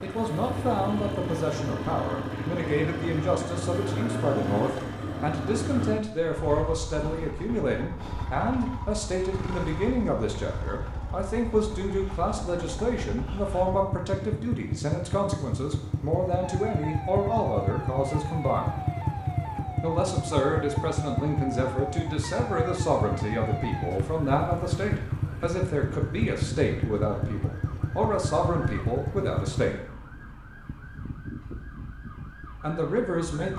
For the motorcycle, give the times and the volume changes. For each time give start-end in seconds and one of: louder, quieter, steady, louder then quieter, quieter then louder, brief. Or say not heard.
0.0-29.8 quieter then louder.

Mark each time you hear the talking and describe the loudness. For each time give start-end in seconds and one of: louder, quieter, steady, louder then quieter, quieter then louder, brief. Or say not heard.
0.0-18.8 steady
19.8-29.8 steady
32.6-33.5 brief.